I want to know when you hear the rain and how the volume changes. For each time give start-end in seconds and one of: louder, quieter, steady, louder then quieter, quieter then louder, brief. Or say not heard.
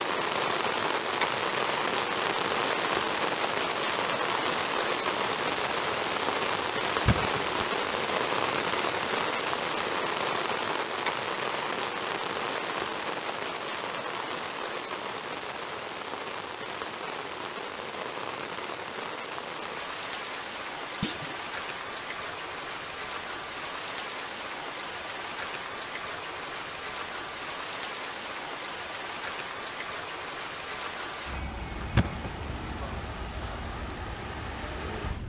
0.0-35.2 quieter.